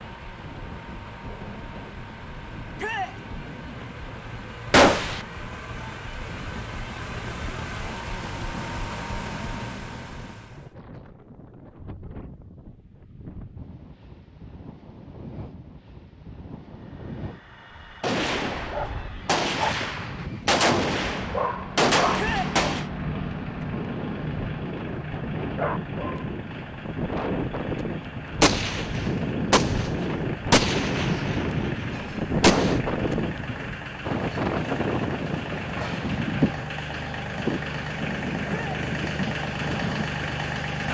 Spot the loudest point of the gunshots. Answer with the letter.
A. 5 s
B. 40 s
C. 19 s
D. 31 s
A.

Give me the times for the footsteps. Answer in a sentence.
The footsteps can't be heard in this clip.